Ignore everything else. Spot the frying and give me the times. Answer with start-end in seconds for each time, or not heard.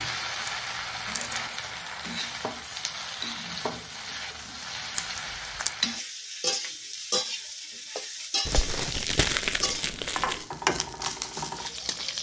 0.0-12.1.